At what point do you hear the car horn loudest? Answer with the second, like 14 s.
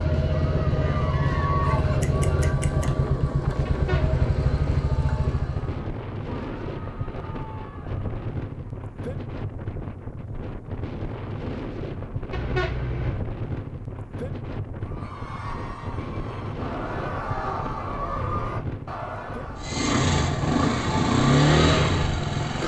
13 s.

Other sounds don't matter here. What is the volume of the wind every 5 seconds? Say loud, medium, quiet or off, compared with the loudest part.
loud, loud, loud, loud, off.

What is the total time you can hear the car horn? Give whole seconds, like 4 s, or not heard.
2 s.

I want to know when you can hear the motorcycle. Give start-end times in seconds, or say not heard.
0.0-5.8, 19.6-22.6.